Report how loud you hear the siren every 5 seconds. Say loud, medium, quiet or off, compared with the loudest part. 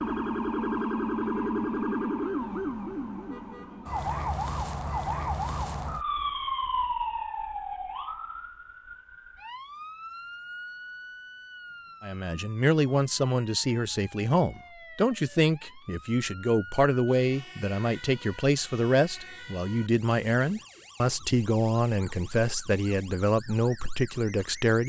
loud, loud, quiet, quiet, quiet.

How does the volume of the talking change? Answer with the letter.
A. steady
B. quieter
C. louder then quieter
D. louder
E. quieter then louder
A.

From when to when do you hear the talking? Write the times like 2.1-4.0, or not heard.
12.0-24.8.